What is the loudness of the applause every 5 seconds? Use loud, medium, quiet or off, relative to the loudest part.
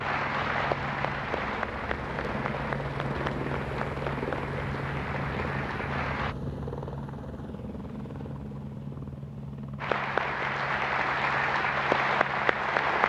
medium, medium, loud.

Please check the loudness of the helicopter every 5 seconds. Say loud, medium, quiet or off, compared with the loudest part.
loud, loud, medium.